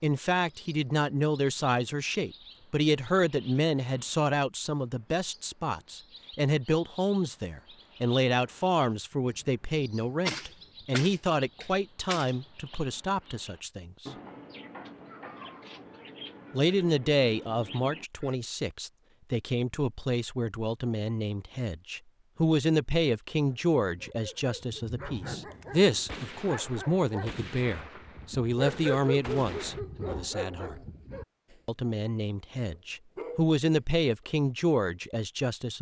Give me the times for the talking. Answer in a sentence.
The talking can be heard from 0.0 to 14.1 s, from 16.5 to 30.8 s and from 31.6 to 35.7 s.